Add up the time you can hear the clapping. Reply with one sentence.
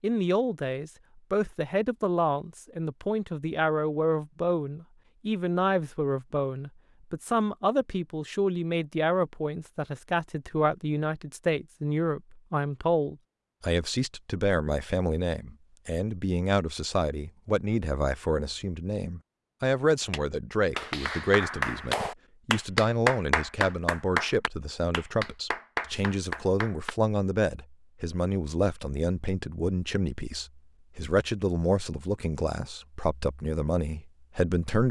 The clapping can be heard for 7 seconds in total.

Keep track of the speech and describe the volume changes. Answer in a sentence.
The loudness of the speech stays about the same.